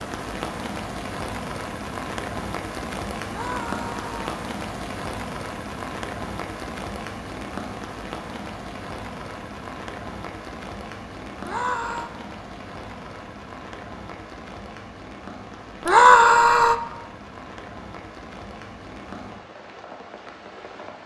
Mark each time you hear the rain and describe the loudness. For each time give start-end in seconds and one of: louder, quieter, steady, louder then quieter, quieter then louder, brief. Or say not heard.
0.0-21.0 quieter.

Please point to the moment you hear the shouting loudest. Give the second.
16 s.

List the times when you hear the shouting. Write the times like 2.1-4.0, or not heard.
3.2-4.2, 11.4-12.1, 15.8-16.8.